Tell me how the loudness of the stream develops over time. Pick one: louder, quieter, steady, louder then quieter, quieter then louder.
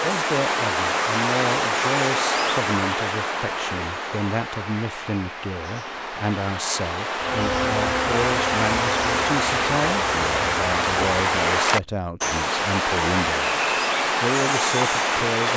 quieter then louder.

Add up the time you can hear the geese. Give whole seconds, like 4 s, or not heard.
not heard.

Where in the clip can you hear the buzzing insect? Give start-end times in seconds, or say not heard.
7.2-11.2.